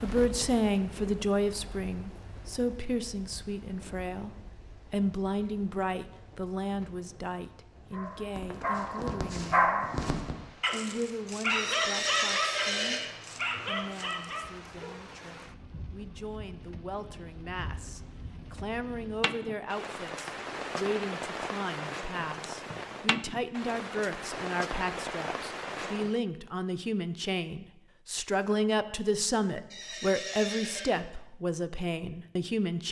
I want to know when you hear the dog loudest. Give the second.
10 s.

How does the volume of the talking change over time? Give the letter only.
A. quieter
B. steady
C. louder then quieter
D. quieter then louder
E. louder
D.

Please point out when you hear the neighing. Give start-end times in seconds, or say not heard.
11.4-13.1, 29.7-30.9.